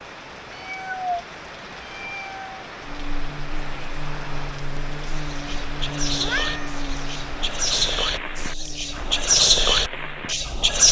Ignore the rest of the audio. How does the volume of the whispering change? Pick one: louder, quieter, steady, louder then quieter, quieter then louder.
louder.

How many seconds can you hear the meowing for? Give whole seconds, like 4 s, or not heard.
3 s.